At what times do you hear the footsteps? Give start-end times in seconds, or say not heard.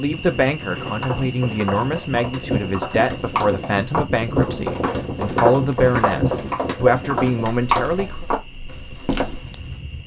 0.8-9.8.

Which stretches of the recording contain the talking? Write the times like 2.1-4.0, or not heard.
0.0-8.2.